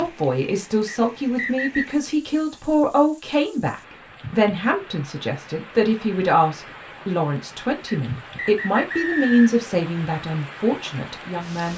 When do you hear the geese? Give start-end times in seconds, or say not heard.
not heard.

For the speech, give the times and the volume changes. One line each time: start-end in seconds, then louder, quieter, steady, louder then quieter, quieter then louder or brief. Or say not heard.
0.0-11.7 steady.